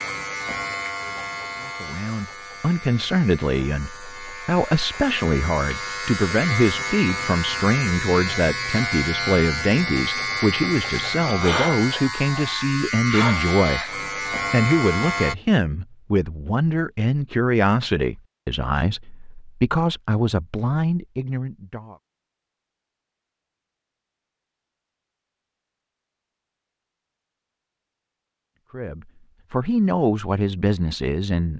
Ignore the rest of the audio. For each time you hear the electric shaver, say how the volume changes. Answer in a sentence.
You can hear the electric shaver from 0.0 to 15.3 s, getting louder.